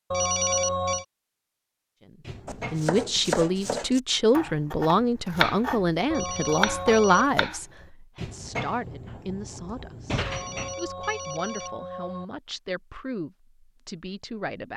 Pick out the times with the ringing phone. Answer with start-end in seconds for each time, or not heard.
0.1-1.1, 6.1-7.3, 10.2-12.2.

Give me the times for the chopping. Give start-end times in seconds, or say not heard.
2.5-7.6.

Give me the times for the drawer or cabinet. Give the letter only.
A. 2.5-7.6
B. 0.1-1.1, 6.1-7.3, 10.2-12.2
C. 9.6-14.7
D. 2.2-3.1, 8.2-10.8
D.